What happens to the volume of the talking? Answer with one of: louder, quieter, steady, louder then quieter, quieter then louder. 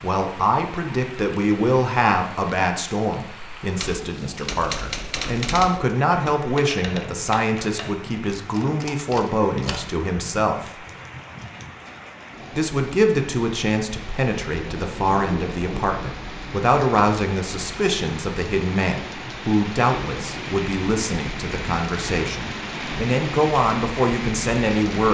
steady.